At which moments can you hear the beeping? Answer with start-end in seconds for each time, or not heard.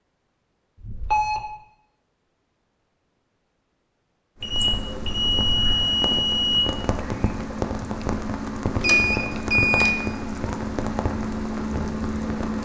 0.8-1.4, 4.4-6.6, 8.8-9.9.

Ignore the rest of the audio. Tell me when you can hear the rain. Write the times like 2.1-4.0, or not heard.
4.4-12.5.